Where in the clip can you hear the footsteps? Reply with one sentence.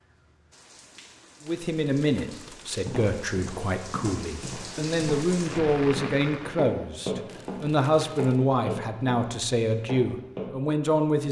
The footsteps can be heard from 2.9 to 10.5 s.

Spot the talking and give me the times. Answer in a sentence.
The talking can be heard from 1.4 to 11.2 s.